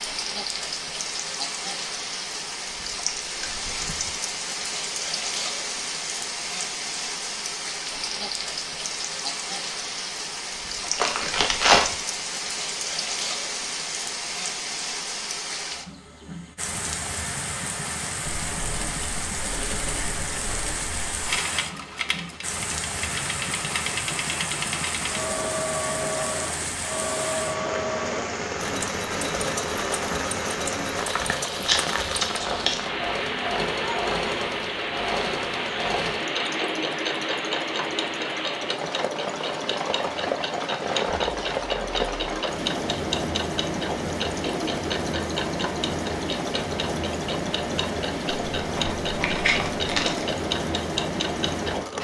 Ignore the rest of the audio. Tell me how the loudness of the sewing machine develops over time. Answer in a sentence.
The loudness of the sewing machine stays about the same.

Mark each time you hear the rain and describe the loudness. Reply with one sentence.
You can hear the rain from 0.0 to 51.9 s, at a steady volume.